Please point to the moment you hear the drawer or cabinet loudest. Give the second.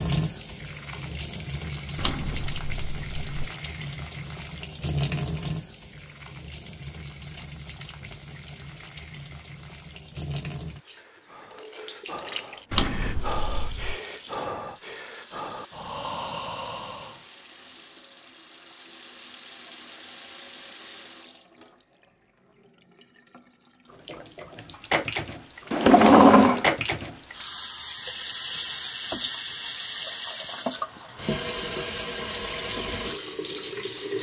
26 s.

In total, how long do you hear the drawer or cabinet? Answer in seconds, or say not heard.
4 s.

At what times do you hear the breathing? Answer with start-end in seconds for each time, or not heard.
10.8-17.2.